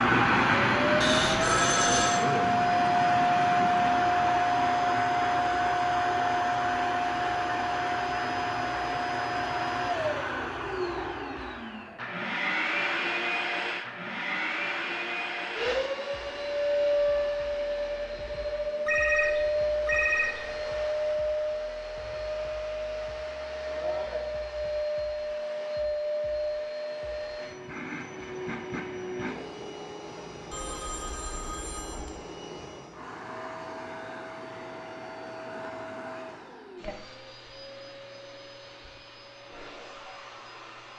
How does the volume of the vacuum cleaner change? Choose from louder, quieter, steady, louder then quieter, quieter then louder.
quieter.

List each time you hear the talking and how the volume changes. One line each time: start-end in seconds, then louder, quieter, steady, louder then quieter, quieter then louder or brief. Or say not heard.
not heard.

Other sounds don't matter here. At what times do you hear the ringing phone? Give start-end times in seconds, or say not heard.
1.0-2.2, 18.9-20.6, 30.5-32.1.